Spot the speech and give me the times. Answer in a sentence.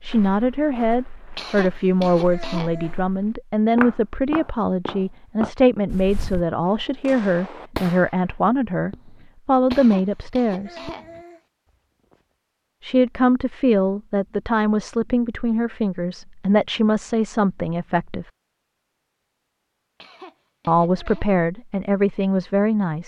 The speech can be heard from 0.0 to 10.9 s, from 12.8 to 18.2 s and from 20.6 to 23.0 s.